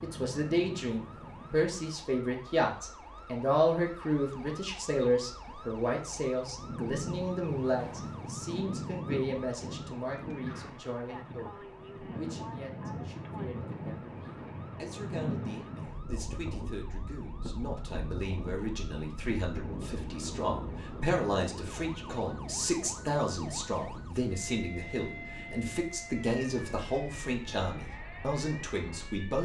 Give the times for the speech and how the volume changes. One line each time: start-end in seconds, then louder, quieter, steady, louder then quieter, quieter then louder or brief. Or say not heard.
0.0-29.4 quieter then louder.